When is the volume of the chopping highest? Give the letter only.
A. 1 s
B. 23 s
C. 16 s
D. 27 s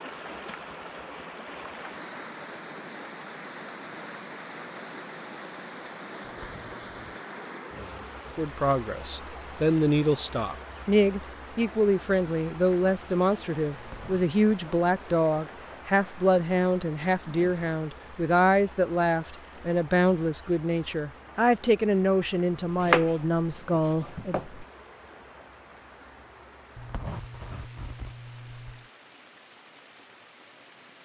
B.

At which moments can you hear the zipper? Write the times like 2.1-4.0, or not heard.
6.2-7.2, 13.7-14.3, 26.8-28.9.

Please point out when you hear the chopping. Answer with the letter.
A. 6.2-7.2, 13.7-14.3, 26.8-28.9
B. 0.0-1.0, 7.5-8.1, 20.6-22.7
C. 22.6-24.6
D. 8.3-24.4
C.